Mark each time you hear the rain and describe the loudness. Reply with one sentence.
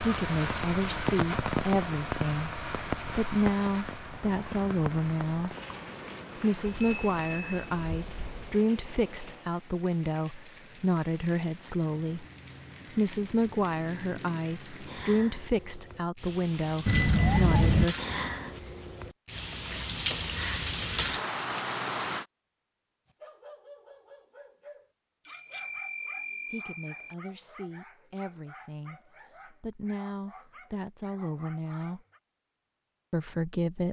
You can hear the rain from 0.0 to 22.2 s, getting quieter then louder.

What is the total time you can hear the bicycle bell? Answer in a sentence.
The bicycle bell can be heard for 5 seconds in total.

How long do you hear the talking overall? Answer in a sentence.
The talking can be heard for 23 seconds in total.